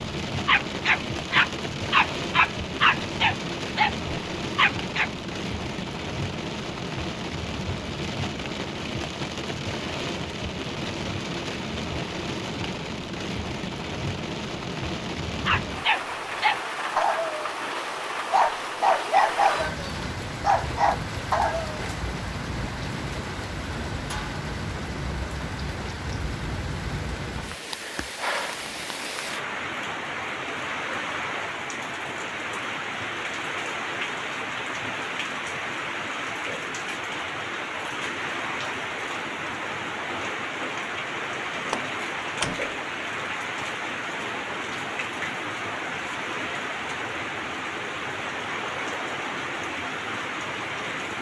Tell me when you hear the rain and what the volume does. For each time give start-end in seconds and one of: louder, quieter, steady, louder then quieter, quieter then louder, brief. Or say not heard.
0.0-51.1 steady.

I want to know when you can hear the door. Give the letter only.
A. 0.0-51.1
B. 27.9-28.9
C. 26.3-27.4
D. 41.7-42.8
D.